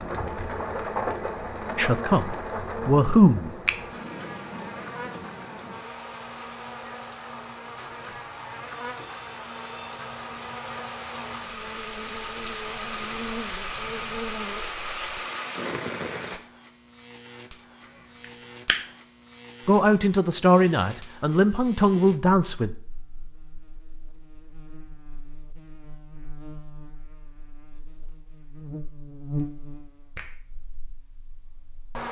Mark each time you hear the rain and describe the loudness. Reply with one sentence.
The rain can be heard from 0.0 to 16.4 s, getting quieter then louder.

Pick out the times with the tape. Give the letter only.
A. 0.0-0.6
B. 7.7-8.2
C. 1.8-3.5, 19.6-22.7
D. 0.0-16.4
B.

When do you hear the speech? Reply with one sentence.
The speech can be heard from 1.8 to 3.5 s and from 19.6 to 22.7 s.